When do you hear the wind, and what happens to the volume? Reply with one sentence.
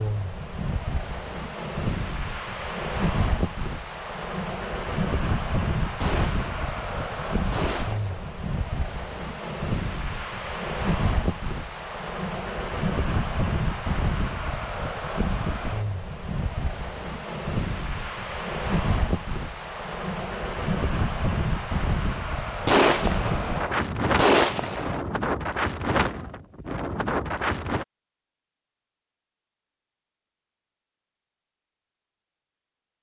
You can hear the wind from 0.0 to 27.9 s, at a steady volume.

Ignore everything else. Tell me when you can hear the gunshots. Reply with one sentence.
The gunshots can be heard from 6.0 to 8.3 s and from 22.6 to 25.0 s.